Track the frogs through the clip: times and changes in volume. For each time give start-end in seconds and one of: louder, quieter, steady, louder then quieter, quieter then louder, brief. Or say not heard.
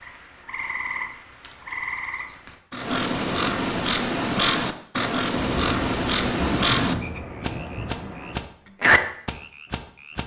0.0-10.2 louder.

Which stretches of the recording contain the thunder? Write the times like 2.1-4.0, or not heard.
5.3-8.5.